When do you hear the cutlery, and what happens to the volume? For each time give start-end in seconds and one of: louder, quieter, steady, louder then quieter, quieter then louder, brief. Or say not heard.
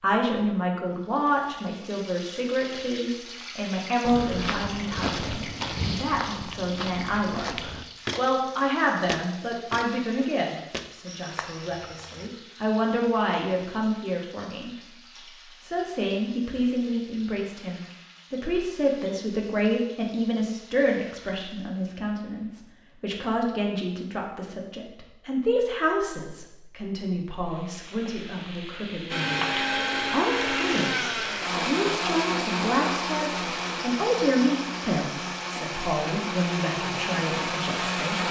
not heard.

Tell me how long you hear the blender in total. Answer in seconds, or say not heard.
9 s.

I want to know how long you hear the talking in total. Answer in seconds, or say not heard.
37 s.